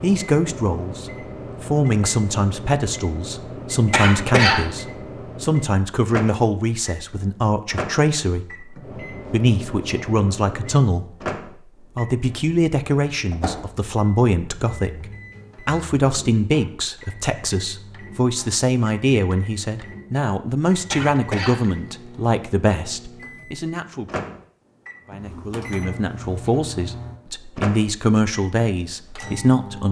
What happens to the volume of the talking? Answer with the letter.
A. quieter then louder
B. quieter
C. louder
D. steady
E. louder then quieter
D.